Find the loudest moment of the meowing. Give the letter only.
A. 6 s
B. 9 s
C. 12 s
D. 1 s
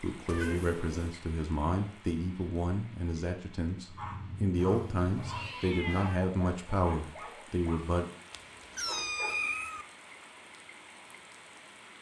B.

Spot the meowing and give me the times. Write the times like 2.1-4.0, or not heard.
0.2-1.1, 4.5-6.2, 8.3-9.8.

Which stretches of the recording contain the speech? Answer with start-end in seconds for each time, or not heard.
0.0-8.1.